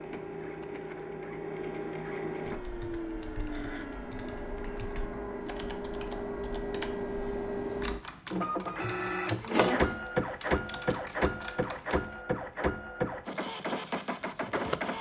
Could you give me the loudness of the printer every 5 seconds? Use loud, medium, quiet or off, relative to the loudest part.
medium, loud, loud.